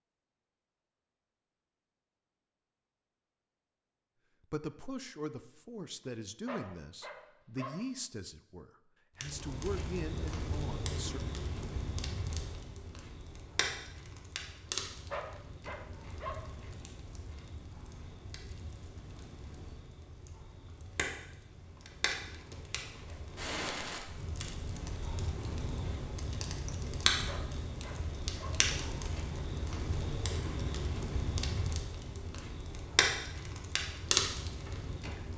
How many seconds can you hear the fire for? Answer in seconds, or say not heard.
26 s.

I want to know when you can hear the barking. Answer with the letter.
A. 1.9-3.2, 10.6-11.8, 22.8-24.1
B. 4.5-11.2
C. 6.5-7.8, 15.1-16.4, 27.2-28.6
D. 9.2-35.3
C.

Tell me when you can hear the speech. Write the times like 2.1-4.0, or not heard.
4.5-11.2.